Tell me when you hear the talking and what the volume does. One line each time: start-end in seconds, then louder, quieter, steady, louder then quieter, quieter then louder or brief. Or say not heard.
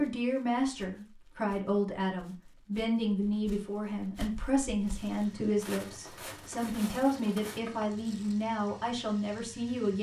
0.0-9.9 steady.